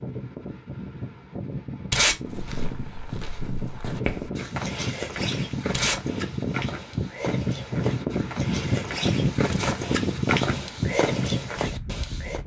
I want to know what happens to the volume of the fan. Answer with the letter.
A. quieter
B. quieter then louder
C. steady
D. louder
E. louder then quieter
D.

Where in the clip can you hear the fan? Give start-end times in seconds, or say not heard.
0.0-12.4.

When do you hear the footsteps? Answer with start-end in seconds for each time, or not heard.
2.2-12.4.